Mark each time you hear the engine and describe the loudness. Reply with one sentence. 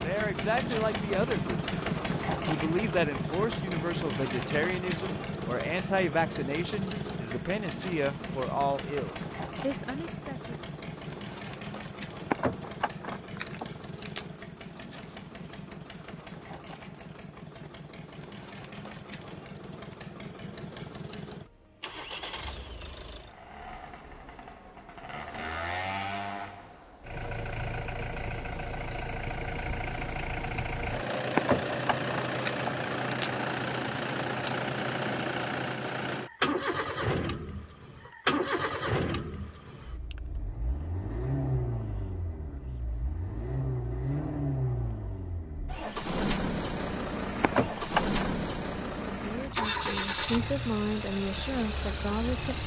You can hear the engine from 0.0 to 52.6 s, getting quieter then louder.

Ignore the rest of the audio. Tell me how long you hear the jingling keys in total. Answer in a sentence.
You can hear the jingling keys for 5 seconds altogether.